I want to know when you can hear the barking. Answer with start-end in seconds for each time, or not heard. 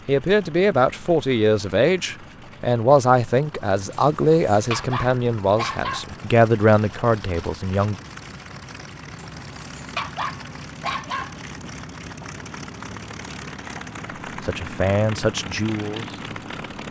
3.9-6.1, 9.2-11.4.